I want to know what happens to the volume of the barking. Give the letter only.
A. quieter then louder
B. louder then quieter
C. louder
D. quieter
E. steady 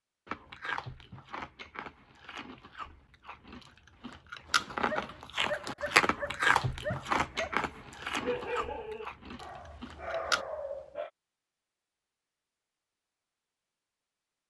E.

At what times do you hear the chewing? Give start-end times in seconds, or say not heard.
0.2-10.4.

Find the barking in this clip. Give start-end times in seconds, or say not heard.
4.8-11.1.